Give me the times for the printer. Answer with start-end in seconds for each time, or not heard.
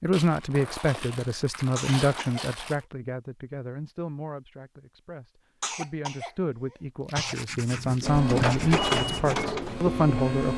8.0-10.5.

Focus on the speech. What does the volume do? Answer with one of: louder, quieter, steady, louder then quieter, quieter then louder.
quieter then louder.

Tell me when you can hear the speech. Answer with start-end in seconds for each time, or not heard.
0.0-10.5.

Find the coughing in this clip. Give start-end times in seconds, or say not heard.
1.8-2.5, 5.6-7.3.